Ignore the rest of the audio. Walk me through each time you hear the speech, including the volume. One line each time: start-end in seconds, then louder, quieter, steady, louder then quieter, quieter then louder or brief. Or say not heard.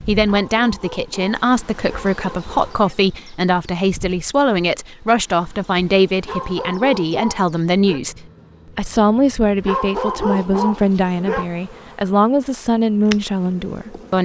0.0-14.2 steady.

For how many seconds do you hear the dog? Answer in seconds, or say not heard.
6 s.